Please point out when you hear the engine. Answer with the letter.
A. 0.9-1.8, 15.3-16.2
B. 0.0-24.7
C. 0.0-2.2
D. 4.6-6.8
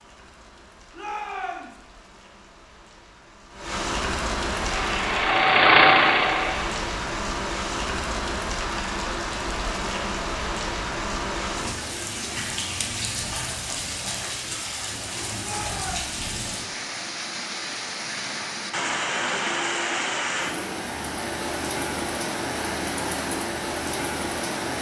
D.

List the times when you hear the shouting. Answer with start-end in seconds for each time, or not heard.
0.9-1.8, 15.3-16.2.